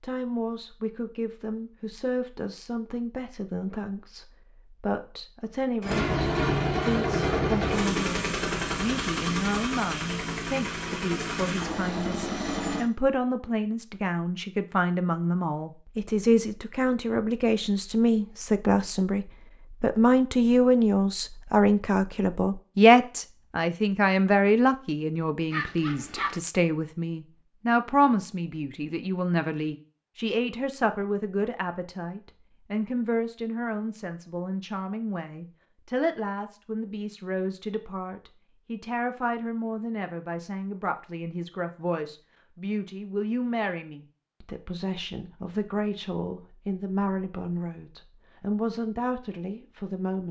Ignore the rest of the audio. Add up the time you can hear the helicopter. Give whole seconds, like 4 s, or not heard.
7 s.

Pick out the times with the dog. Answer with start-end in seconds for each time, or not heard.
25.5-26.4.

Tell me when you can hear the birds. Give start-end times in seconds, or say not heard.
not heard.